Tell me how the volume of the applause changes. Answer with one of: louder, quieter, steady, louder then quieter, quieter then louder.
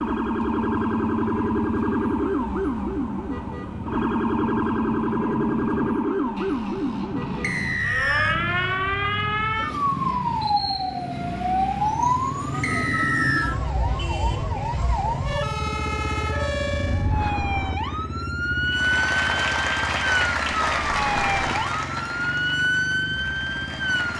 quieter.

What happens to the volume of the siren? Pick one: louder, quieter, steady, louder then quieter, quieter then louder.
steady.